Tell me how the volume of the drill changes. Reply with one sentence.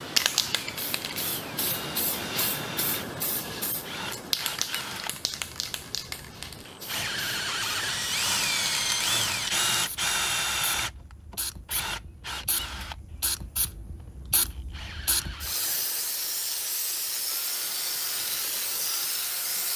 The loudness of the drill goes up, then down.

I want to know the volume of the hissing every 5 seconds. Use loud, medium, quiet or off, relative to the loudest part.
loud, medium, medium, loud.